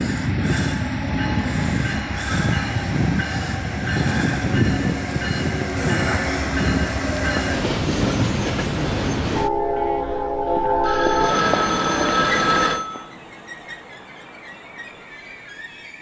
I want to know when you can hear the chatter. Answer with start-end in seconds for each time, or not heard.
not heard.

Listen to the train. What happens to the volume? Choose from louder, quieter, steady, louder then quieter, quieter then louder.
quieter.